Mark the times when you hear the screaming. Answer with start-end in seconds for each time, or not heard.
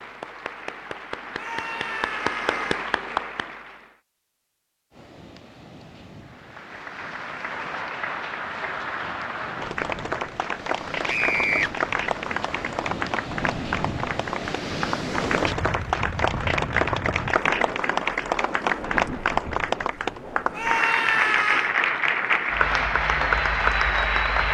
1.4-2.8, 11.1-11.7, 20.5-21.7.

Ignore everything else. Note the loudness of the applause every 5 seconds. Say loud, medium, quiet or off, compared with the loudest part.
medium, medium, medium, loud, loud.